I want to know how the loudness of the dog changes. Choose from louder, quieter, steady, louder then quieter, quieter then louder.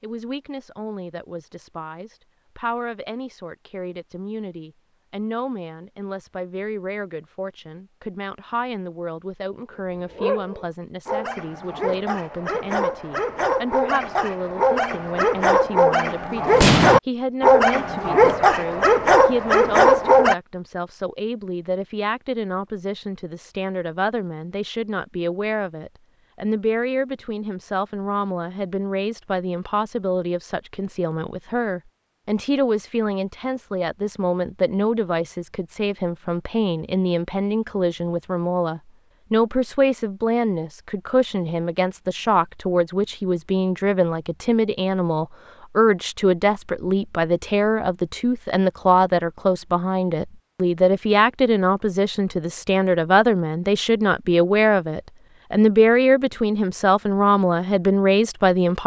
louder.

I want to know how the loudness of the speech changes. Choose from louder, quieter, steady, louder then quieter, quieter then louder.
louder.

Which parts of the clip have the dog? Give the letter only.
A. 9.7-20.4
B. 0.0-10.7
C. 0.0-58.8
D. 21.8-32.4
A.